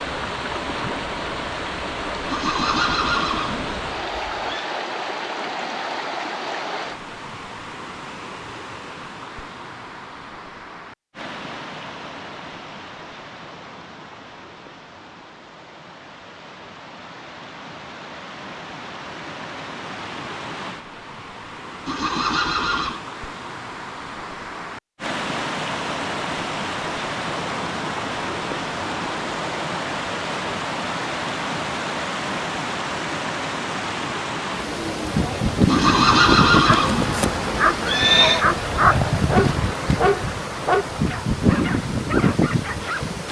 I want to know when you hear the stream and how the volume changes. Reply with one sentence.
You can hear the stream from 0.0 to 43.2 s, getting quieter then louder.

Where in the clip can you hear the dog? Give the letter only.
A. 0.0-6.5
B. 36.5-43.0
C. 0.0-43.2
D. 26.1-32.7
B.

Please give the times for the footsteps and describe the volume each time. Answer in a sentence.
The footsteps can't be heard in this clip.